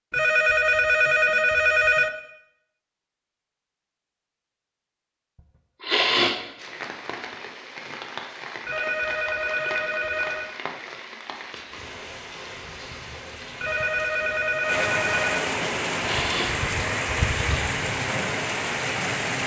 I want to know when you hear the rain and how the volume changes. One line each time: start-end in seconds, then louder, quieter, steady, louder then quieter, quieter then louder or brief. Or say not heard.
6.5-19.4 louder.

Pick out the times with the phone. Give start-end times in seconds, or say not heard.
0.1-2.1, 8.7-10.5, 13.6-15.5.